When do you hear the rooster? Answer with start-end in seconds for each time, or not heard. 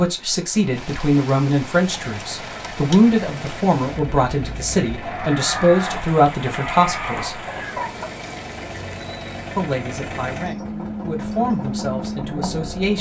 5.0-8.1.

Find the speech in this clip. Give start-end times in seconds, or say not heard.
0.0-7.3, 9.6-12.9.